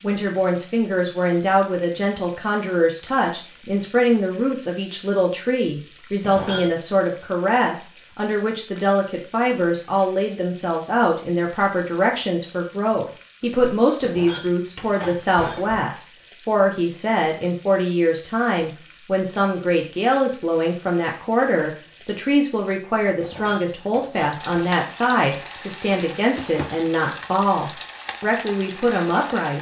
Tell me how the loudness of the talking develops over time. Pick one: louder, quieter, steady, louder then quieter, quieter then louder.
steady.